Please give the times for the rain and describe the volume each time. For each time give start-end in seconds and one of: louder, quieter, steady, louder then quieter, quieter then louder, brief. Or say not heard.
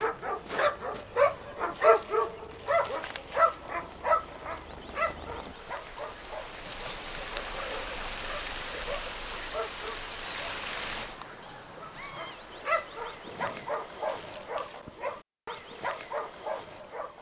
0.1-13.8 louder then quieter.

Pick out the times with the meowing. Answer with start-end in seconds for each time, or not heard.
10.2-12.4.